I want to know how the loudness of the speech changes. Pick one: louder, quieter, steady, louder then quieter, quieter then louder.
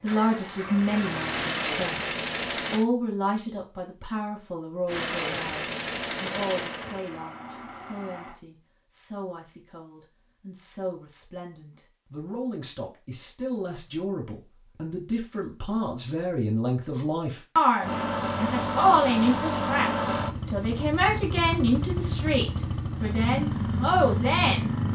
quieter then louder.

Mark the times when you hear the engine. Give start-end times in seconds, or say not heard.
0.1-2.9, 4.8-8.4, 17.8-24.9.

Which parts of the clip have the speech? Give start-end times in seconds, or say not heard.
0.0-24.9.